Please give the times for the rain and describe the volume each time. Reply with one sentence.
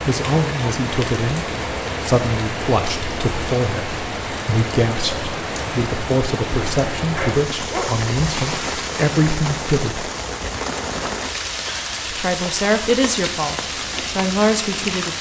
The rain can be heard from 0.0 to 15.1 s, at a steady volume.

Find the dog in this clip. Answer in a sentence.
You can hear the dog from 7.1 to 8.0 s.